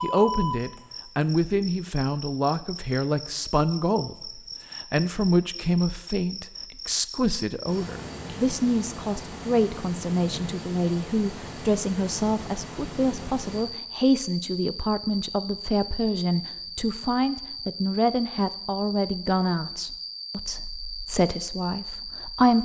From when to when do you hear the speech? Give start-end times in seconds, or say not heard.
0.0-22.6.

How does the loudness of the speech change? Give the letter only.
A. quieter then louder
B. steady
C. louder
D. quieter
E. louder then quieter
B.